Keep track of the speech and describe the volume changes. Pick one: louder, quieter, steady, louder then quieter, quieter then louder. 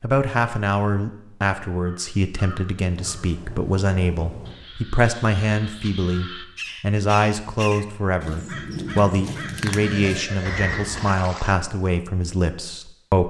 steady.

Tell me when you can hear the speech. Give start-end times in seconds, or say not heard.
0.0-13.2.